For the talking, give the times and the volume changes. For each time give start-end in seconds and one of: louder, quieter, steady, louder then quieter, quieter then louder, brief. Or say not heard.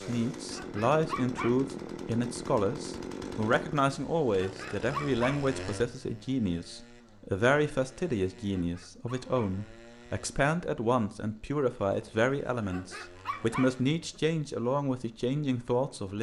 0.0-16.1 steady.